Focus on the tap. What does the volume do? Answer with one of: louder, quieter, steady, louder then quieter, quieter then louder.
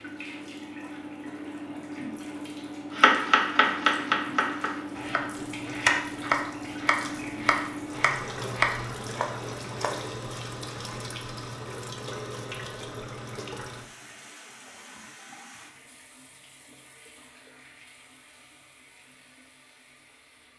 quieter.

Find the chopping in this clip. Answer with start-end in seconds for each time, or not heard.
3.0-10.1.